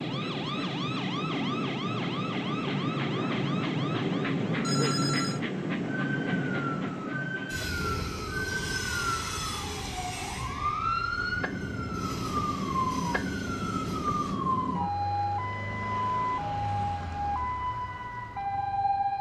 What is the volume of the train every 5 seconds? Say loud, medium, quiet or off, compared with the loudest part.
loud, loud, medium, off.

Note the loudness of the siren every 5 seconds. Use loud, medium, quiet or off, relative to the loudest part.
medium, medium, loud, loud.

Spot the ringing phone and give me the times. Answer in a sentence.
The ringing phone can be heard from 4.6 to 5.4 s.